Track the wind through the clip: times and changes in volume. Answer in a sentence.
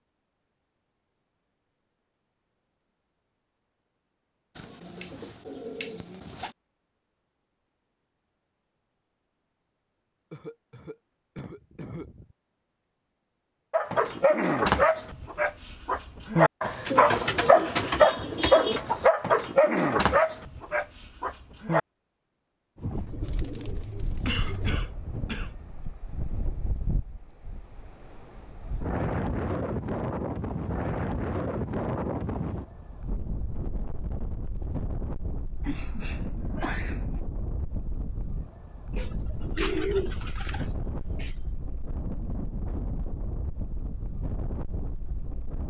You can hear the wind from 22.8 to 45.6 s, getting louder then quieter.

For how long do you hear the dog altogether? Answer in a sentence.
The dog can be heard for 8 seconds in total.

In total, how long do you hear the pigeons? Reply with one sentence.
The pigeons can be heard for 8 seconds in total.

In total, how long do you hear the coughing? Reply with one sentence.
You can hear the coughing for 5 seconds altogether.